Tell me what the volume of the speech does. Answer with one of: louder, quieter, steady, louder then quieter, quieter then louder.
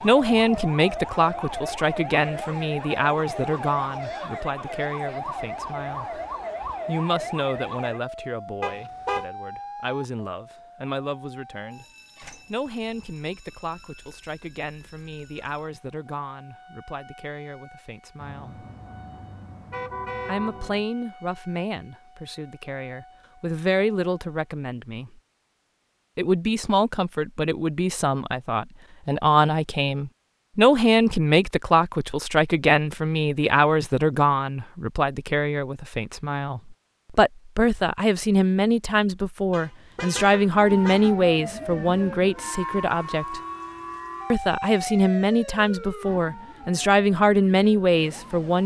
quieter then louder.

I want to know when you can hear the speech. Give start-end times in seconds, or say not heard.
0.0-6.2, 6.8-11.8, 12.4-18.6, 20.2-25.1, 26.1-43.4, 44.3-48.6.